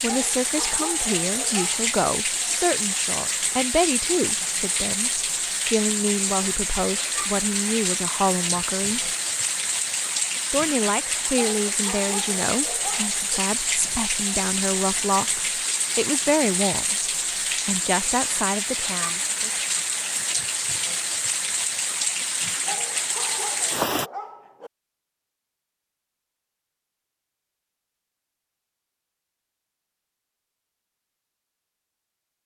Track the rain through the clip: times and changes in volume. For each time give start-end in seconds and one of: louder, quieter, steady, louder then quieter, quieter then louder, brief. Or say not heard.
0.0-24.1 steady.